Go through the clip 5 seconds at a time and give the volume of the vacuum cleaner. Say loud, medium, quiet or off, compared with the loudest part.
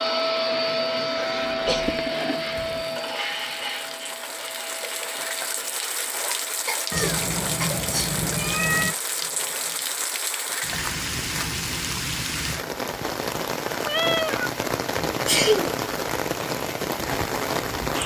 loud, quiet, off, off.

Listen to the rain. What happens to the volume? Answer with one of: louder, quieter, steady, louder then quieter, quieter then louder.
louder.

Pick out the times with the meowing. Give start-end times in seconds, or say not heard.
1.1-2.9, 6.9-8.9, 13.8-14.5.